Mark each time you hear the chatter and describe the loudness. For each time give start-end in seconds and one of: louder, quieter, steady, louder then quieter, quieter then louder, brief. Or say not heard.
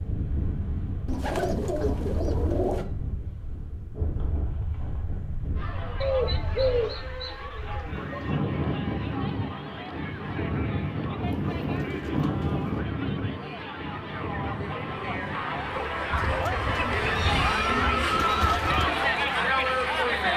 5.5-20.3 louder.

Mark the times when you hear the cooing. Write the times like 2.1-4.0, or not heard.
1.1-2.9, 6.0-8.5, 11.2-12.8, 16.1-18.9.